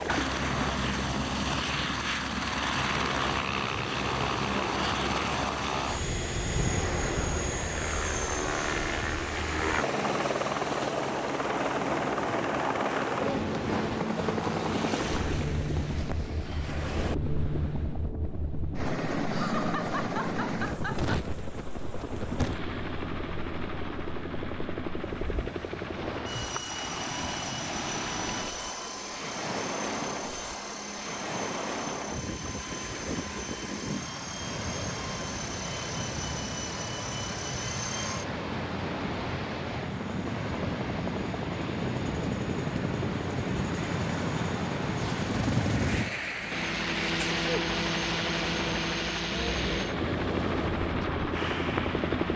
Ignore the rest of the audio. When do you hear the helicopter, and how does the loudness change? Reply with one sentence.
The helicopter can be heard from 0.0 to 52.3 s, getting quieter then louder.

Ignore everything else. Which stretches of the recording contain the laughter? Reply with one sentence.
You can hear the laughter from 19.3 to 21.1 s.